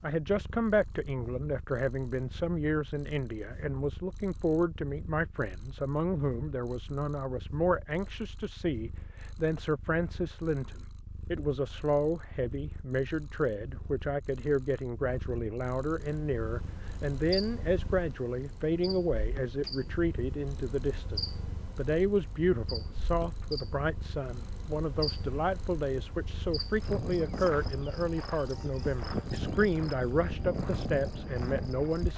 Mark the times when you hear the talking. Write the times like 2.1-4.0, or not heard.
0.0-32.1.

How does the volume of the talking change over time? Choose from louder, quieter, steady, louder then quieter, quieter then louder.
steady.